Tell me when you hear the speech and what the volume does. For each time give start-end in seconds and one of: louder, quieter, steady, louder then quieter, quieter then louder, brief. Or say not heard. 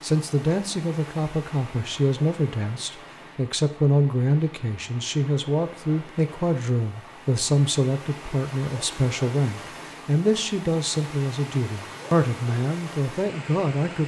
0.0-14.0 steady.